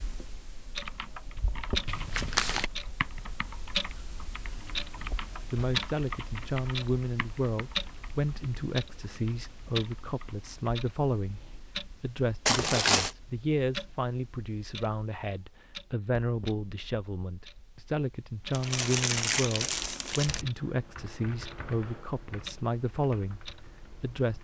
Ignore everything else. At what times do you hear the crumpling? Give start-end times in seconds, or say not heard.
1.9-2.7, 12.4-13.2, 18.5-20.4.